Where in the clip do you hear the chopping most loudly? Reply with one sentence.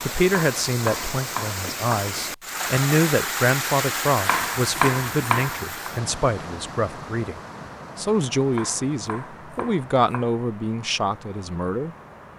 The volume of the chopping peaks at 5 seconds.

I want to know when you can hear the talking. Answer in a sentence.
The talking can be heard from 0.0 to 7.3 s and from 8.0 to 11.9 s.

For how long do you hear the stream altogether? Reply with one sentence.
The stream can be heard for 12 seconds in total.